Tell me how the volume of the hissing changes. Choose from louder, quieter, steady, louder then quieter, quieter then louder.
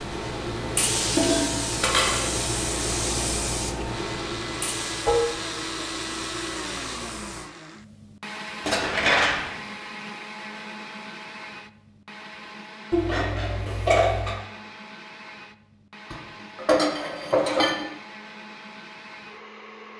quieter.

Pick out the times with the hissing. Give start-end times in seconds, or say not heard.
0.0-7.5.